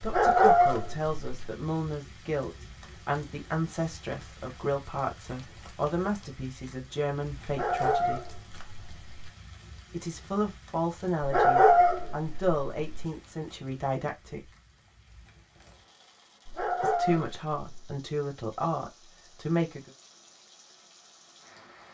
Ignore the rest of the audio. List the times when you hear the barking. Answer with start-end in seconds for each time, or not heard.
0.0-1.5, 7.5-9.3, 11.2-13.1, 16.4-17.9.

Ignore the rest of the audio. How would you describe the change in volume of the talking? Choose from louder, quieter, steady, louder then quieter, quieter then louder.
steady.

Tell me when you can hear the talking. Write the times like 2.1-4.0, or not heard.
0.0-8.2, 9.9-14.5, 16.8-19.9.